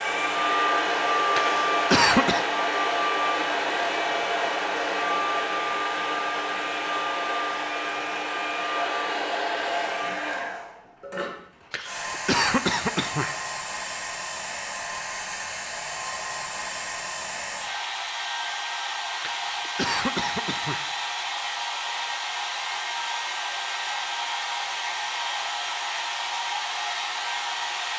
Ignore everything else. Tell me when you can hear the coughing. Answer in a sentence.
The coughing can be heard from 1.4 to 2.5 s, from 11.7 to 13.4 s and from 19.2 to 20.9 s.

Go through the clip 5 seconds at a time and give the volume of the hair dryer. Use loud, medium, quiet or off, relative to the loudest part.
loud, loud, medium, medium, medium, medium.